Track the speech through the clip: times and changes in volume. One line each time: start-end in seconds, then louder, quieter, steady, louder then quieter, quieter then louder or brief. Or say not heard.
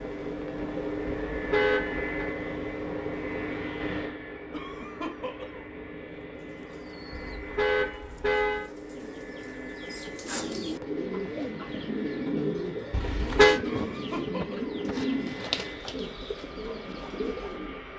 not heard.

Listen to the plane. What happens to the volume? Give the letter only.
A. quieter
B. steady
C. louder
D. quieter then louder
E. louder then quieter
A.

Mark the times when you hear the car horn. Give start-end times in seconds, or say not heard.
1.3-2.1, 7.1-8.7, 12.9-13.6.